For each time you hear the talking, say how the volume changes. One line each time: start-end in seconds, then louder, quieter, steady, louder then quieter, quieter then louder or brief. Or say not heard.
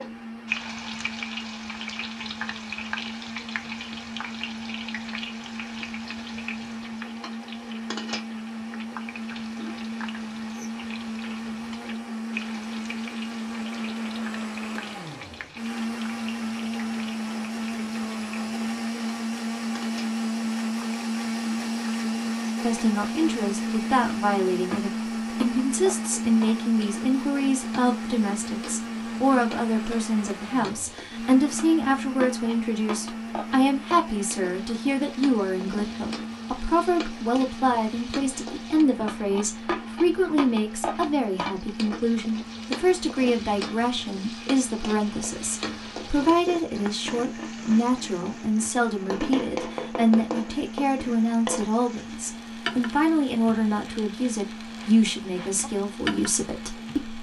22.6-57.1 steady.